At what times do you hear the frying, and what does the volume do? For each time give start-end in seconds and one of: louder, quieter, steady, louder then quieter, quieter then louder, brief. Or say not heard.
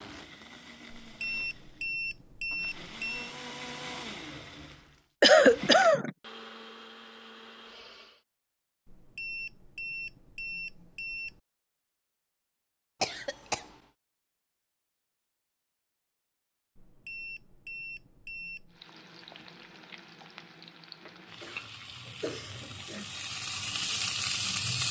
18.7-24.8 louder.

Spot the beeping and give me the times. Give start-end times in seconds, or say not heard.
0.9-3.3, 8.8-11.4, 16.8-18.8.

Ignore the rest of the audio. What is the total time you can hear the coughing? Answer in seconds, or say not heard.
3 s.